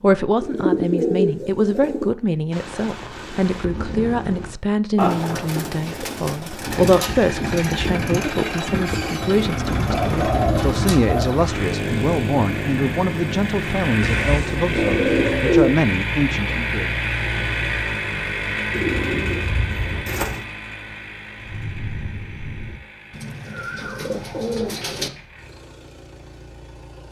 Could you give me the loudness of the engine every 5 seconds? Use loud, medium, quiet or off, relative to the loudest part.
off, loud, loud, loud, quiet, quiet.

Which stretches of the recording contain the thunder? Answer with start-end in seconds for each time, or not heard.
2.5-4.5, 21.4-22.8.